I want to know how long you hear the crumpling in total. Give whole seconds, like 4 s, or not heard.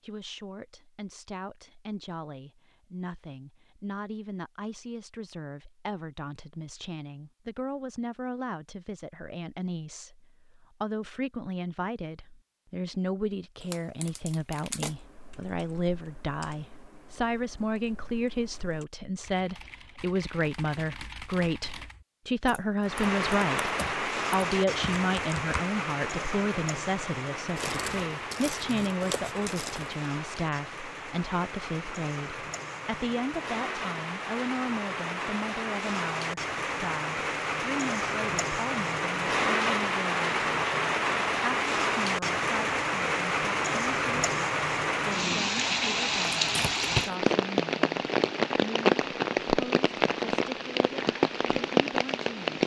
5 s.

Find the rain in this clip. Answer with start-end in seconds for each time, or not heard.
22.8-52.6.